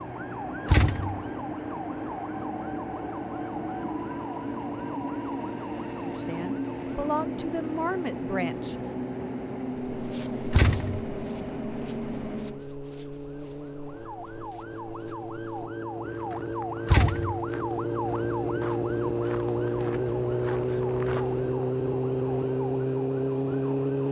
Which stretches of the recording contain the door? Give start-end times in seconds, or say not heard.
0.7-1.2, 10.5-11.1, 16.9-17.4.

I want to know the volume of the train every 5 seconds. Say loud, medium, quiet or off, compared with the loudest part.
loud, loud, loud, off, off.